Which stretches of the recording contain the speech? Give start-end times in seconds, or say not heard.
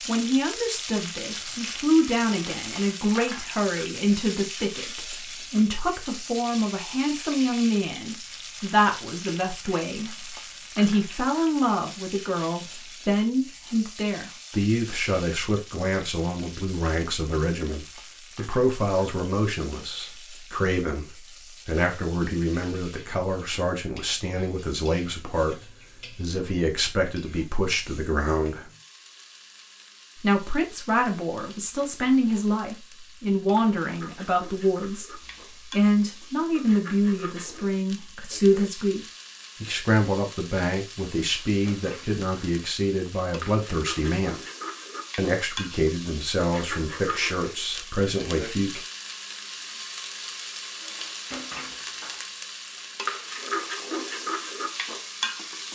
0.1-28.7, 30.2-39.0, 39.6-44.4, 45.1-48.8.